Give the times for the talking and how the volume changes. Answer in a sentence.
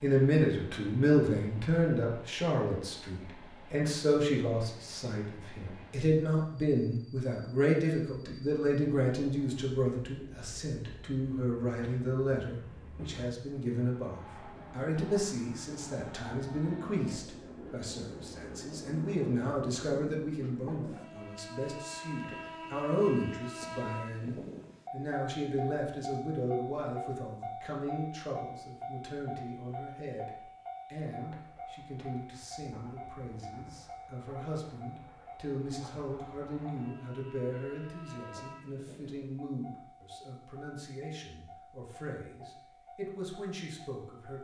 You can hear the talking from 0.0 to 44.3 s, getting quieter.